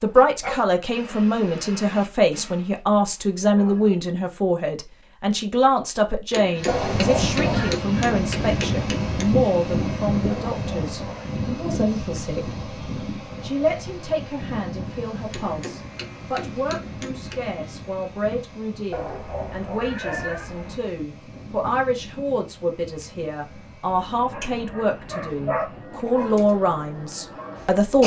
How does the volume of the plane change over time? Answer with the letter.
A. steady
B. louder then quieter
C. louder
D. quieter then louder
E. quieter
E.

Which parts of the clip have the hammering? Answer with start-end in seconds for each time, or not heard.
6.3-9.2, 15.3-17.5.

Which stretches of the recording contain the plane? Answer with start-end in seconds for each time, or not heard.
6.5-28.0.